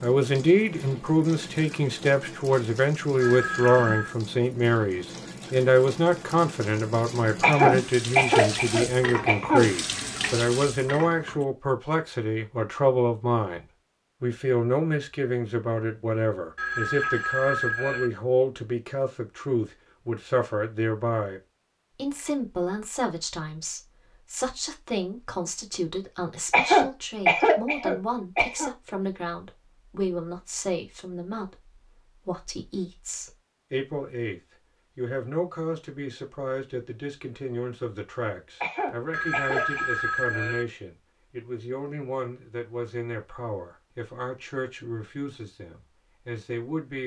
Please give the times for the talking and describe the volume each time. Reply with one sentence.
You can hear the talking from 0.0 to 47.0 s, getting quieter.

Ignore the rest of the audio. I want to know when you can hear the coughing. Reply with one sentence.
You can hear the coughing from 7.4 to 9.7 s, from 26.5 to 28.7 s and from 38.6 to 39.8 s.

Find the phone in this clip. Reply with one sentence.
The phone can be heard from 3.2 to 4.2 s, from 16.6 to 18.1 s and from 39.1 to 40.6 s.